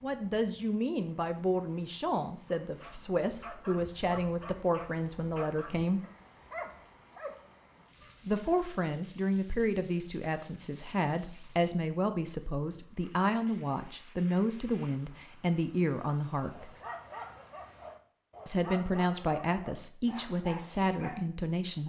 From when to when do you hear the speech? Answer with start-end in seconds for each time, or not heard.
0.0-6.0, 8.2-16.7, 18.4-21.8.